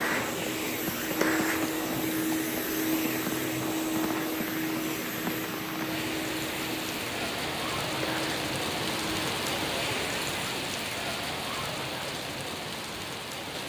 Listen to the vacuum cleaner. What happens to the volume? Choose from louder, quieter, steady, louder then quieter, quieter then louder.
quieter.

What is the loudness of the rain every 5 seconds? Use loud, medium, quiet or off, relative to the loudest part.
medium, loud, loud.